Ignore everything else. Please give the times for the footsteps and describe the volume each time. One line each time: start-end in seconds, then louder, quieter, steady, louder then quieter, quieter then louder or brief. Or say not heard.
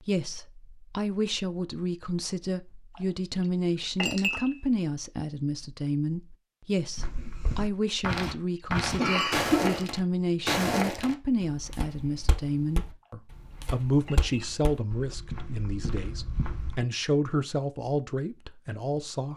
7.0-16.9 quieter.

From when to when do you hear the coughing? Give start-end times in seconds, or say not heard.
8.9-9.8.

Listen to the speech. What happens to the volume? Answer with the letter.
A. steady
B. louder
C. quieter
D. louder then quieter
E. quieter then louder
A.